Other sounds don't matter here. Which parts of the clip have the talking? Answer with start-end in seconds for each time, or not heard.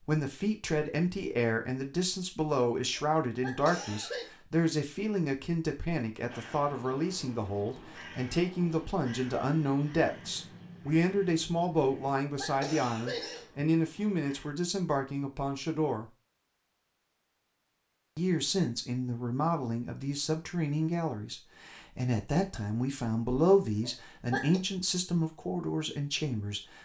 0.0-16.1, 18.1-26.8.